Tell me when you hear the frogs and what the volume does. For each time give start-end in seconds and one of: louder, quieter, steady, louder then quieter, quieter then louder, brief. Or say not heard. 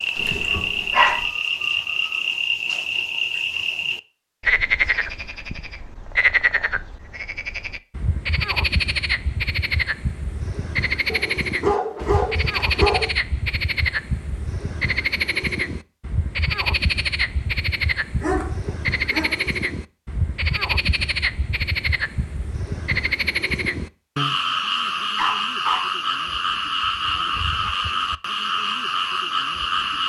0.0-30.0 steady.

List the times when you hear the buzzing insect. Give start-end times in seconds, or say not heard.
not heard.